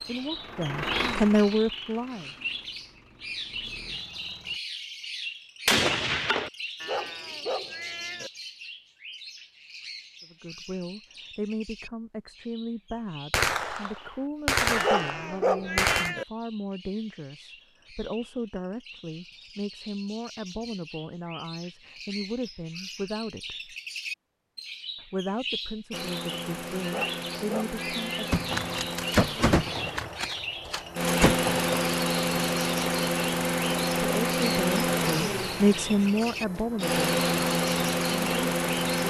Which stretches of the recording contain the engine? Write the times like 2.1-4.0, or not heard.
0.0-4.6, 25.9-39.0.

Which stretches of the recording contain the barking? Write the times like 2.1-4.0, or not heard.
6.8-8.3, 14.8-16.2, 26.8-28.4.